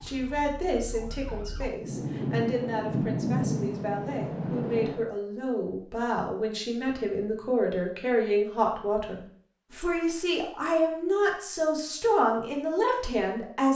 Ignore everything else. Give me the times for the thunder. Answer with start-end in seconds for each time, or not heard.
1.8-5.1.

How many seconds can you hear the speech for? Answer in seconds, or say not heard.
14 s.